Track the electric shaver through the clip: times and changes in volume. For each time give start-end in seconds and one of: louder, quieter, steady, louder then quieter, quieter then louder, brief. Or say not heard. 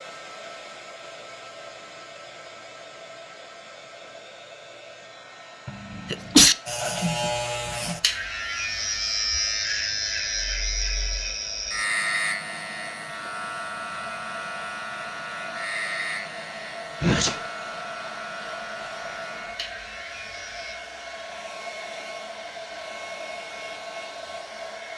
6.7-20.8 quieter.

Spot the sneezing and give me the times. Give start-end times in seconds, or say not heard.
5.7-6.5, 17.0-17.5.